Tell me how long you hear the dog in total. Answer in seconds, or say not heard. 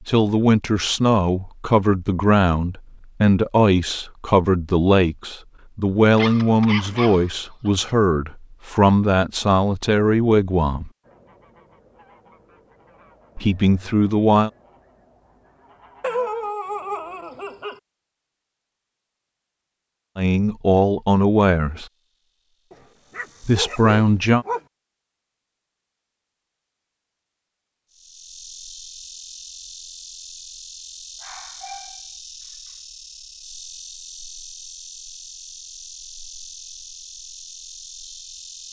7 s.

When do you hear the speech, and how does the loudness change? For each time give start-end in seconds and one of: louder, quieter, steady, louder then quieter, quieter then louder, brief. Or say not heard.
0.1-10.9 steady
13.3-14.5 brief
20.1-21.9 brief
23.4-24.4 brief.